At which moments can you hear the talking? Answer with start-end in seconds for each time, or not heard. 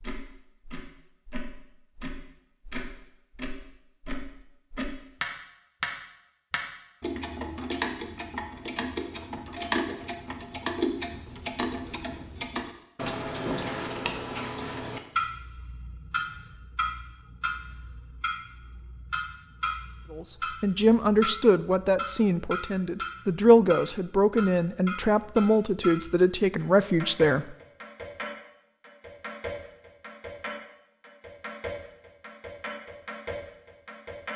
20.1-27.6.